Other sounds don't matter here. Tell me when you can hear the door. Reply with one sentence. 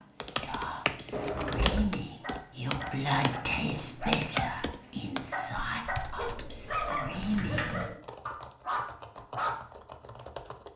The door can be heard from 1.1 to 2.0 s and from 7.1 to 8.0 s.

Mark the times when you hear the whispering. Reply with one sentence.
You can hear the whispering from 0.1 to 7.7 s.